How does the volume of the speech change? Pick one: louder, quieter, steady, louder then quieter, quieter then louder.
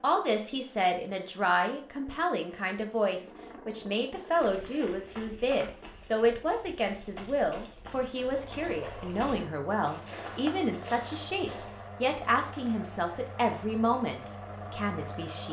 steady.